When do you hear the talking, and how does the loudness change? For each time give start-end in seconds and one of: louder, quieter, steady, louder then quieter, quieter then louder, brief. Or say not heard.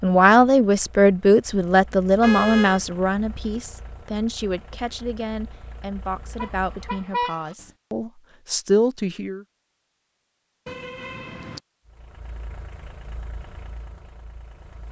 0.0-9.4 quieter then louder.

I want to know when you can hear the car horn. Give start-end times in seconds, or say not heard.
2.2-2.8, 6.3-7.7, 10.7-11.6.